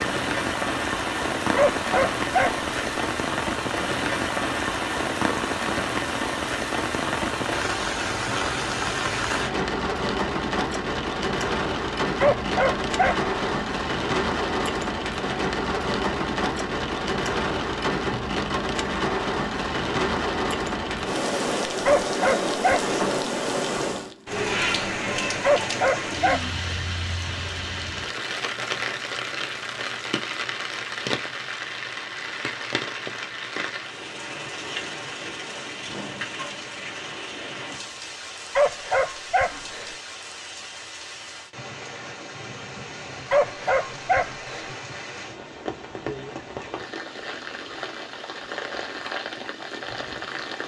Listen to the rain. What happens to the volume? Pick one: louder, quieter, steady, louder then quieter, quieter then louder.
quieter.